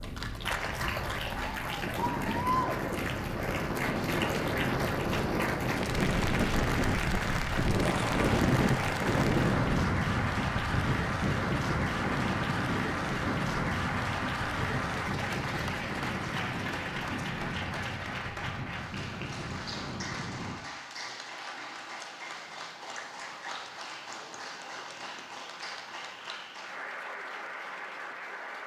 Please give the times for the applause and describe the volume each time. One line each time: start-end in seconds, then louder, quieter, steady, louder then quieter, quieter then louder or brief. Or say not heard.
0.0-28.6 quieter.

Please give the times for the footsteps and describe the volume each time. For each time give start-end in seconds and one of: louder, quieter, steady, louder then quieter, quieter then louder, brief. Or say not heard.
not heard.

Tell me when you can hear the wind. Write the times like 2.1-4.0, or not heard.
0.0-20.6.